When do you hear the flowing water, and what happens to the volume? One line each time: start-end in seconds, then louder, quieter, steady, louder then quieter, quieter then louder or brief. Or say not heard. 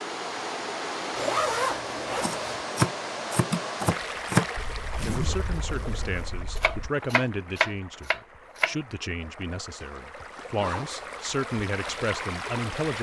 0.0-12.9 quieter then louder.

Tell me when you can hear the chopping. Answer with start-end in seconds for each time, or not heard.
2.2-4.5, 6.5-8.8.